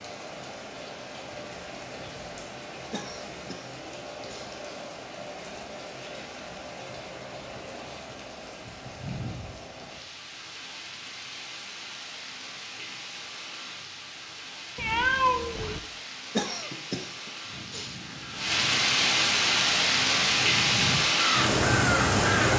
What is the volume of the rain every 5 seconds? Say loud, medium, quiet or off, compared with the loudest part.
quiet, quiet, quiet, medium, loud.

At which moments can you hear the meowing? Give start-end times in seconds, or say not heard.
14.8-15.8.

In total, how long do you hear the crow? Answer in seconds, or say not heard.
5 s.